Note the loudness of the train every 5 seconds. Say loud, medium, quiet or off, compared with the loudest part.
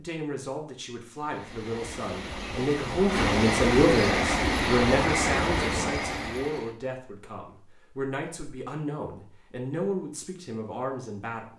loud, loud, off.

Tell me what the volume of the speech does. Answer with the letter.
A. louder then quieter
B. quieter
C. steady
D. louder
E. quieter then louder
A.